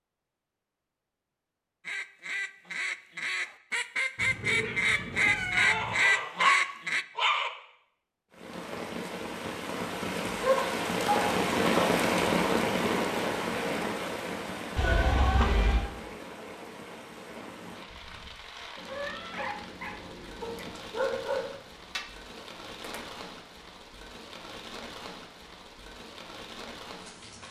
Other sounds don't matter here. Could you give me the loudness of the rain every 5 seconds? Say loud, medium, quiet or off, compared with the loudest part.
off, medium, loud, quiet, quiet, quiet.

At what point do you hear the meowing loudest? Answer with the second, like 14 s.
15 s.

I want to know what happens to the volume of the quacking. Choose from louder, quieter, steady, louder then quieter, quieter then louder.
louder.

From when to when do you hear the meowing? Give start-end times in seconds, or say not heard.
4.2-6.0, 14.8-15.9, 18.8-20.8.